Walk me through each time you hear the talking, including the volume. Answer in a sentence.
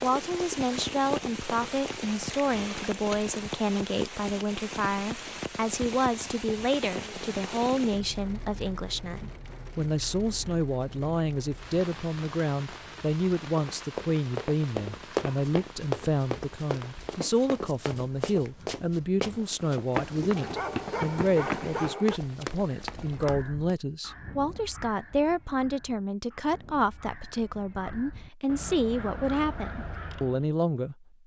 You can hear the talking from 0.0 to 31.1 s, at a steady volume.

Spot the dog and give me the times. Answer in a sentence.
You can hear the dog from 20.4 to 22.2 s.